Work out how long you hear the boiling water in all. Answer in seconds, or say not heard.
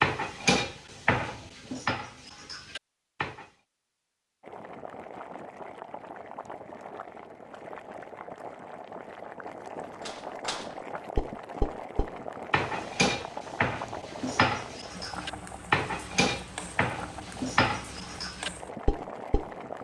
15 s.